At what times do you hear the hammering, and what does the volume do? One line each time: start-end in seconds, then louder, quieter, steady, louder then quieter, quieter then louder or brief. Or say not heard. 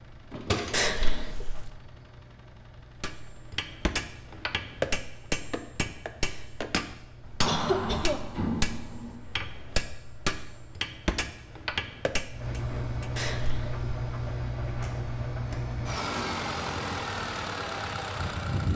3.0-13.2 steady.